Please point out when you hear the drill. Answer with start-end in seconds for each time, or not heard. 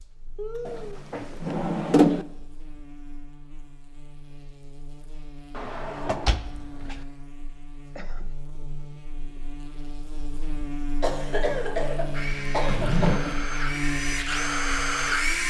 12.1-15.4.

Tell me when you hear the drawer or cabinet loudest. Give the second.
2 s.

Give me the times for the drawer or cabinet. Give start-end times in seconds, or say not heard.
0.7-2.2, 5.5-7.0, 12.7-13.2.